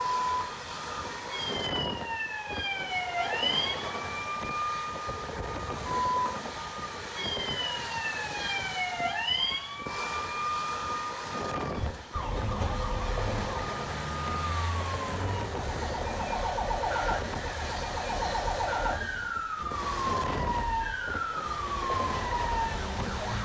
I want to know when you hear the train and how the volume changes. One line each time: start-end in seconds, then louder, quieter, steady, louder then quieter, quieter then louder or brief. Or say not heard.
0.0-23.4 steady.